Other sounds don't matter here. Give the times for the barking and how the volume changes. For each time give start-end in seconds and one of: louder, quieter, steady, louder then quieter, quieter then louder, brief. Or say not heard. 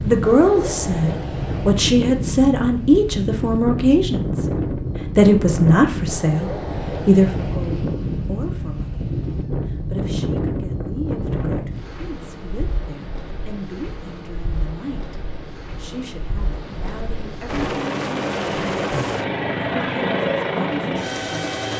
not heard.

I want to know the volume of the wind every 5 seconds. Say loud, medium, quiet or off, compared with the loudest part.
loud, loud, loud, medium, off.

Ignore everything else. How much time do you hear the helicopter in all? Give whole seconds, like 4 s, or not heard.
4 s.